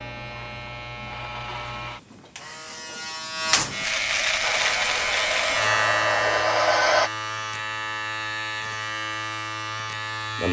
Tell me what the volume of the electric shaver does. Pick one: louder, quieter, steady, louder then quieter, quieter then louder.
louder then quieter.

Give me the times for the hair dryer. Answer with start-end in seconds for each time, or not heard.
4.4-7.1.